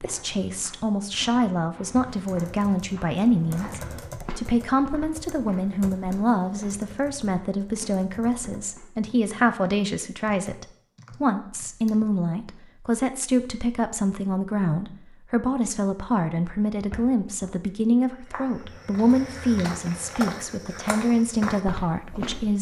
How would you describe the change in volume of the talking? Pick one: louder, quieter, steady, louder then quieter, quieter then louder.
steady.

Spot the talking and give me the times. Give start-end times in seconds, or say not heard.
0.0-22.5.